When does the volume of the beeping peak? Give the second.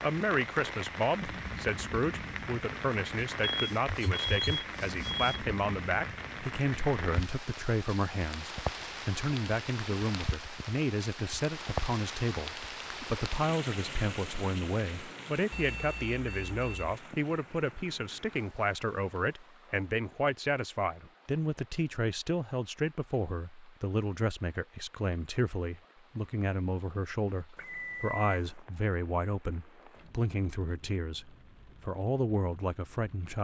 4 s.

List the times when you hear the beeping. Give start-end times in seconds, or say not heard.
3.5-5.4, 15.5-16.9, 27.6-28.6.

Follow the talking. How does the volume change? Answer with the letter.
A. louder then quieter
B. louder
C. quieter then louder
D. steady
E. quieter
D.